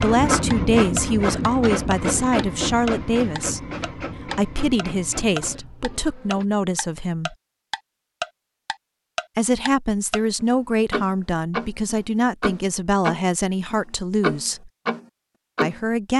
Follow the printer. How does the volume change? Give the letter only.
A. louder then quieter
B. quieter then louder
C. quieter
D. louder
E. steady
C.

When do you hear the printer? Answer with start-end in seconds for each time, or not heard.
0.0-6.5.